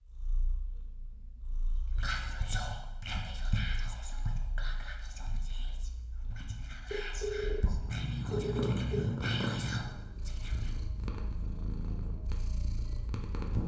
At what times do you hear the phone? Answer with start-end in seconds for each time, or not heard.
1.9-2.6, 6.9-9.1.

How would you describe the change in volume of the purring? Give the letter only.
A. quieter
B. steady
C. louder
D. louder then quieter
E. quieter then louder
D.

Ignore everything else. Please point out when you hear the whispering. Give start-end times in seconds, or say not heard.
1.9-10.7.